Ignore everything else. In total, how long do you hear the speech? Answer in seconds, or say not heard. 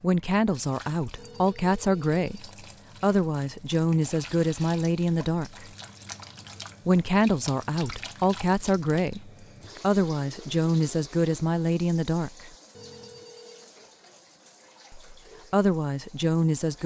13 s.